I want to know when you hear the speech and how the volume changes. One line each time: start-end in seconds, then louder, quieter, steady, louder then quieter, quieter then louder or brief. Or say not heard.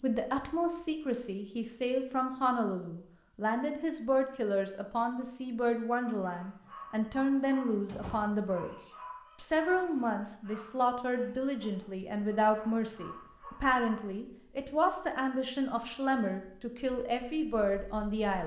0.0-18.4 steady.